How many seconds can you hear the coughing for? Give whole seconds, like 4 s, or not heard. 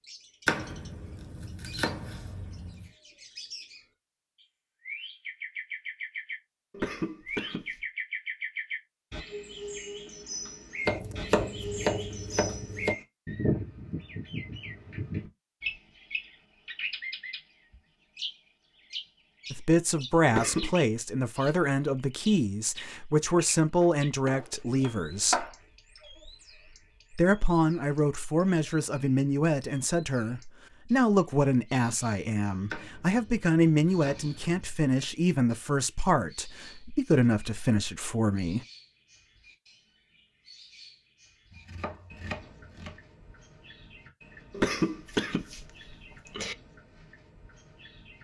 4 s.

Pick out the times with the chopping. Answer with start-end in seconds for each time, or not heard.
0.5-2.9, 10.8-12.9, 23.8-25.6, 32.7-34.8, 41.5-43.0.